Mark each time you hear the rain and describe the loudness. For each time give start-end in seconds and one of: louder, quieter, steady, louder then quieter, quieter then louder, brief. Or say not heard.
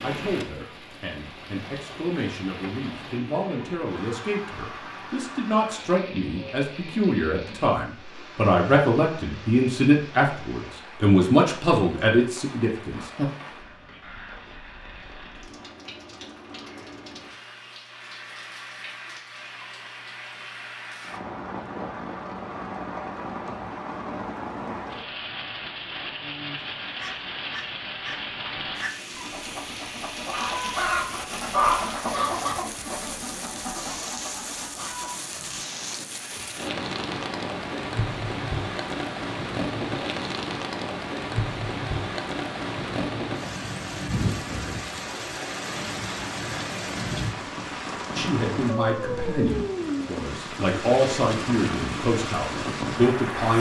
0.0-53.5 louder.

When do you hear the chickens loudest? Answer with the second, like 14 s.
32 s.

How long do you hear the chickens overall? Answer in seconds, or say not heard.
9 s.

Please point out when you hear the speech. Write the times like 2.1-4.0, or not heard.
0.0-13.3, 48.1-53.5.